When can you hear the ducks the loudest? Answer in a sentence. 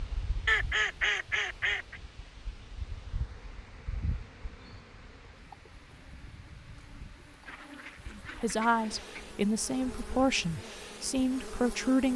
The loudest moment of the ducks is at 1 second.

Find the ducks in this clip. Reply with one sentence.
You can hear the ducks from 0.5 to 2.0 s and from 7.5 to 9.2 s.